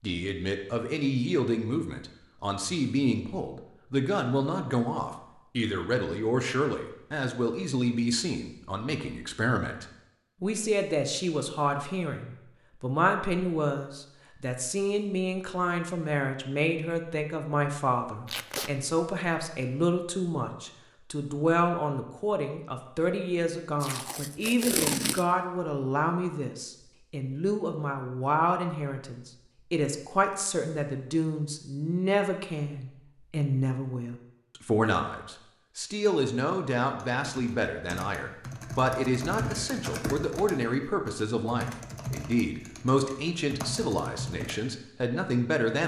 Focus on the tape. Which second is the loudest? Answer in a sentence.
The loudest moment of the tape is at 25 seconds.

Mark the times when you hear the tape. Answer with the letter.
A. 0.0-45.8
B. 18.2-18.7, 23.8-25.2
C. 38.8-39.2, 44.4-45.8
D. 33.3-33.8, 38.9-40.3
B.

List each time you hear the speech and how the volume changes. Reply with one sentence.
The speech can be heard from 0.0 to 45.8 s, at a steady volume.